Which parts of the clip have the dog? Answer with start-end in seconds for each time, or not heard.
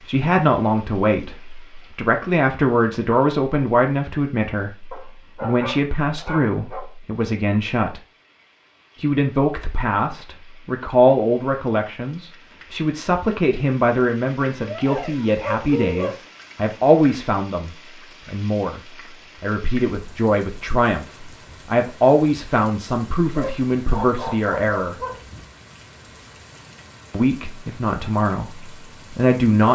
4.9-6.8, 14.6-16.1, 23.4-25.1.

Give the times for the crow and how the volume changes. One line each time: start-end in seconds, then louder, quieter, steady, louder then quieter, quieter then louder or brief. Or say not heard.
not heard.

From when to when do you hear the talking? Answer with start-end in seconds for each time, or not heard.
0.1-8.0, 9.0-24.9, 27.1-29.6.